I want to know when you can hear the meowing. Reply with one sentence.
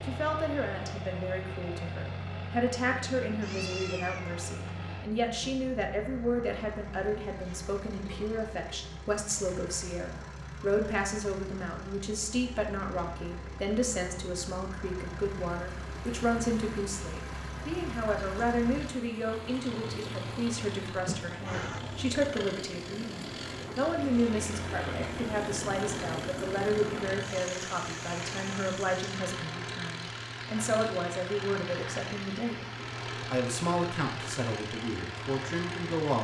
The meowing can be heard from 3.4 to 4.5 s and from 21.1 to 21.8 s.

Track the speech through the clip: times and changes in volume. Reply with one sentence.
You can hear the speech from 0.0 to 36.1 s, at a steady volume.